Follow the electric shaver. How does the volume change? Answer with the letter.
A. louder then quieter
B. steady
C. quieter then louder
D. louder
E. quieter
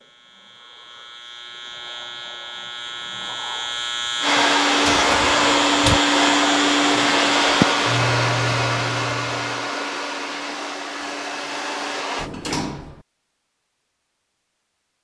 D.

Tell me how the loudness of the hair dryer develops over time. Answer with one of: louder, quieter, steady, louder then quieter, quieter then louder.
quieter.